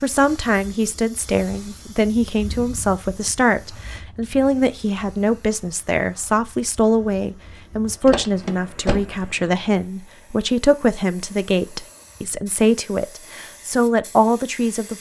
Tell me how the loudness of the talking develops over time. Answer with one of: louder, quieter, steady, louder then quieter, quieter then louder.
steady.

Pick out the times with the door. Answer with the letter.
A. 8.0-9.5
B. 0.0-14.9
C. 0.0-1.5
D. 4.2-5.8
A.